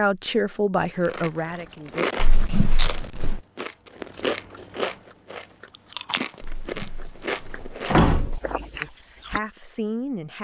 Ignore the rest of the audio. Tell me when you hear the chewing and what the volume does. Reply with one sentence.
You can hear the chewing from 1.1 to 9.4 s, getting quieter.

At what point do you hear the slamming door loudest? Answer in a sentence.
The volume of the slamming door peaks at 8 seconds.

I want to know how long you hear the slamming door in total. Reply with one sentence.
You can hear the slamming door for 3 seconds altogether.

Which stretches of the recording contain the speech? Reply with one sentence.
You can hear the speech from 0.0 to 2.0 s and from 8.8 to 10.3 s.